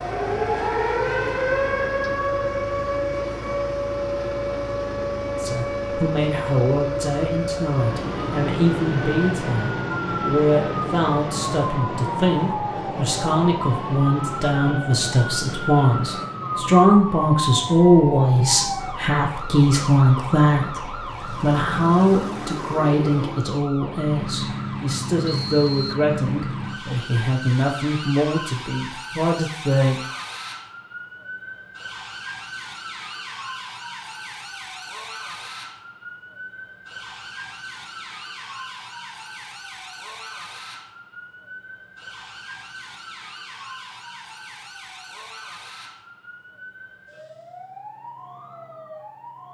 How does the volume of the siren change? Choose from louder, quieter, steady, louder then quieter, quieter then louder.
quieter.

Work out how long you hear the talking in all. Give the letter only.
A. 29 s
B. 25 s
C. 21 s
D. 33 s
B.